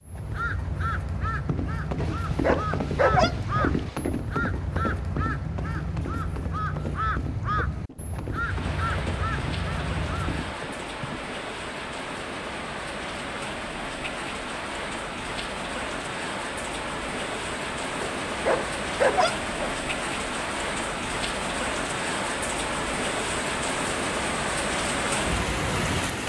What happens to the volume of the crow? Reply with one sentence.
The loudness of the crow stays about the same.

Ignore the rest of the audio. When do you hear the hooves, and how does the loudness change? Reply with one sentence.
The hooves can be heard from 1.4 to 11.2 s, getting quieter.